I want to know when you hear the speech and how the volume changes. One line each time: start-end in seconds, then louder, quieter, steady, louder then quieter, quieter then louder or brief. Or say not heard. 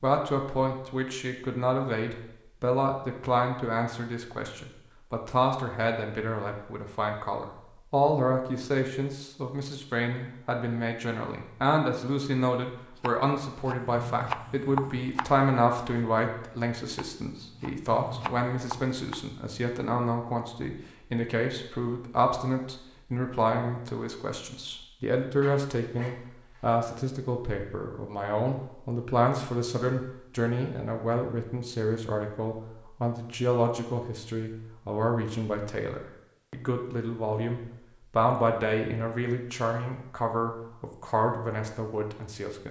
0.0-42.6 steady.